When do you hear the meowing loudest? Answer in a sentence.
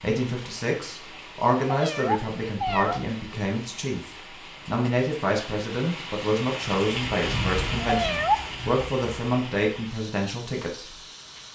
The loudest moment of the meowing is at 8 seconds.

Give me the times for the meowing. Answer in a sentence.
The meowing can be heard from 1.6 to 3.0 s and from 7.8 to 8.8 s.